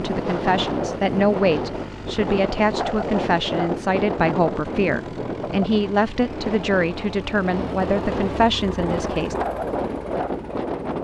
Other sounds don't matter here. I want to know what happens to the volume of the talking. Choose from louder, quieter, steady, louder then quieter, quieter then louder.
steady.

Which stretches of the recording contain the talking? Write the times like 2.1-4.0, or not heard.
0.0-9.3.